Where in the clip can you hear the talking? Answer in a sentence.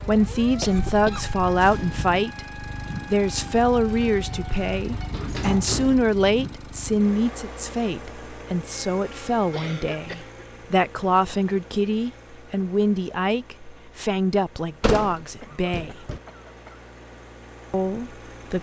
You can hear the talking from 0.1 to 15.9 s and from 17.7 to 18.5 s.